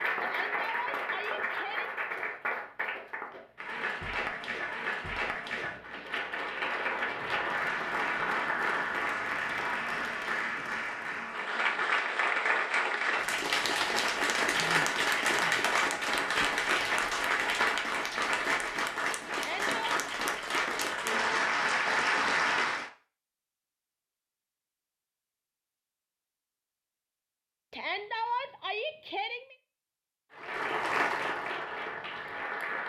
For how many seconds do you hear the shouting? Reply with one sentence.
You can hear the shouting for 4 seconds altogether.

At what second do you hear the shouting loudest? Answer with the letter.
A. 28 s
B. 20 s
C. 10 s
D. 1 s
A.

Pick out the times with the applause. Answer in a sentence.
You can hear the applause from 0.0 to 22.9 s and from 30.3 to 32.8 s.